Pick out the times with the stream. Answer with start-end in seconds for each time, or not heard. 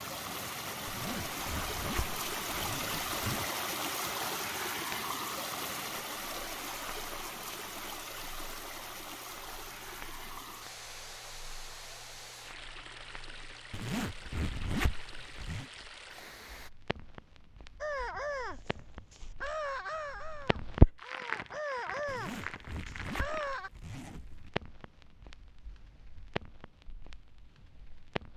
0.0-16.7.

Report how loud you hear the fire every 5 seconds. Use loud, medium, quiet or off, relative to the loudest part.
quiet, quiet, quiet, quiet, loud, quiet.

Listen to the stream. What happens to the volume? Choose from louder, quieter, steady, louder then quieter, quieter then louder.
quieter.